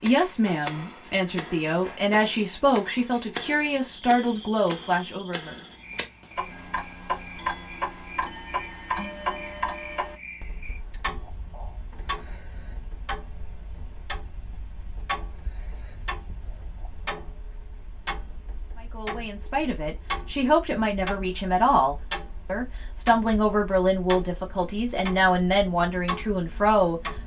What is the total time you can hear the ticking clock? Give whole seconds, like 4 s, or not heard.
27 s.